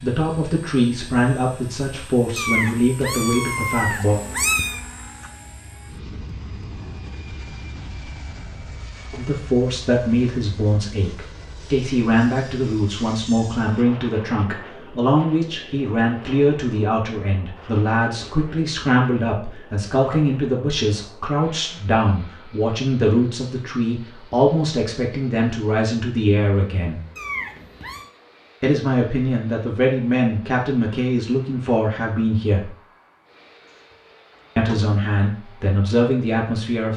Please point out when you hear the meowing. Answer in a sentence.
You can hear the meowing from 2.4 to 4.8 s and from 27.1 to 28.1 s.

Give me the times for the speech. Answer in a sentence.
The speech can be heard from 0.0 to 4.2 s, from 9.1 to 27.0 s, from 28.6 to 32.7 s and from 34.5 to 36.9 s.